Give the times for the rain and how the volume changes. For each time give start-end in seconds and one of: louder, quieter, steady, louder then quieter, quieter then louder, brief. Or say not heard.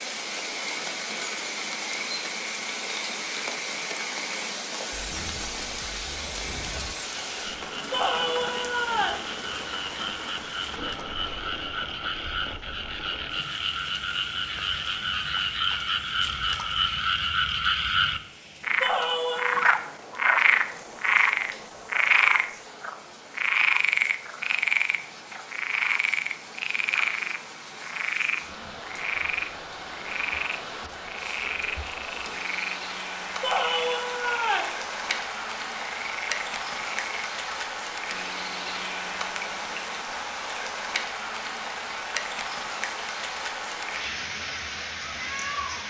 0.0-45.8 quieter then louder.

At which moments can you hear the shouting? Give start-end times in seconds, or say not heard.
7.9-9.2, 18.8-19.7, 33.4-34.8.